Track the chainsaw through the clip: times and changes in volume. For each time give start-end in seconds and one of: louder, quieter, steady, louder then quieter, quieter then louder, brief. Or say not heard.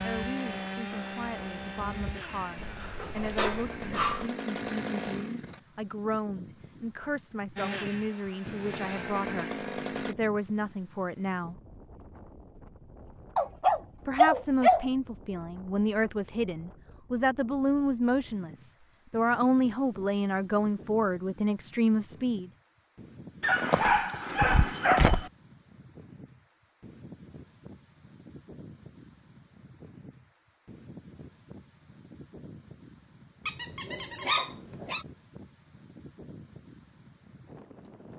0.0-5.6 quieter then louder
7.5-10.2 brief.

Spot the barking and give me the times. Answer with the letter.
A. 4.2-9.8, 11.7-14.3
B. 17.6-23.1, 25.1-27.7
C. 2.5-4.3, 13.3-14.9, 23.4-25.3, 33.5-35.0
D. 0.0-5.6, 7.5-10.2
C.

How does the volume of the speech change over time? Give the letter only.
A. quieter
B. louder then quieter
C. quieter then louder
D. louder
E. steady
D.